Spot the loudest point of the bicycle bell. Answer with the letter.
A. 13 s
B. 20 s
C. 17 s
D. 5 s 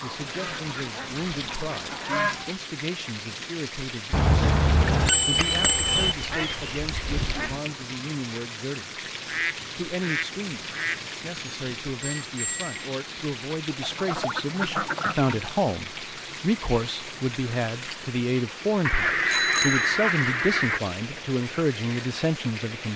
D.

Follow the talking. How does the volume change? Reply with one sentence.
The volume of the talking goes up.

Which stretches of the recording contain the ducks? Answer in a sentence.
The ducks can be heard from 0.0 to 2.5 s, from 5.3 to 7.6 s, from 9.2 to 11.0 s, from 13.8 to 15.6 s and from 18.9 to 20.8 s.